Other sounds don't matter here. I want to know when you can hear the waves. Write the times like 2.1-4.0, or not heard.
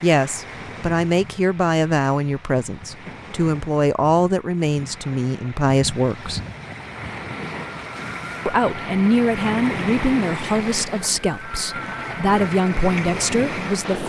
0.0-14.0.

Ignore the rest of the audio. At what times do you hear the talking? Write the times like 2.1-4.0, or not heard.
0.0-6.4, 8.4-14.0.